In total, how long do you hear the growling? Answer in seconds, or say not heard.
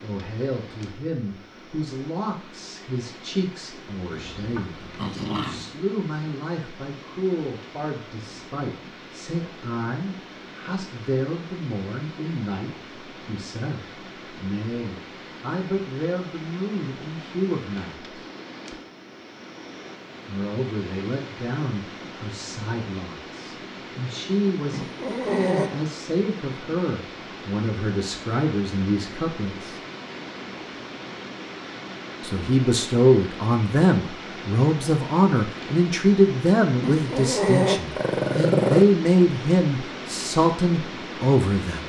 5 s.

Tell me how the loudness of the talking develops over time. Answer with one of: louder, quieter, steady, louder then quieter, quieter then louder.
louder.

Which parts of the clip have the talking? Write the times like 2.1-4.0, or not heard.
0.0-18.1, 20.2-29.8, 32.2-41.8.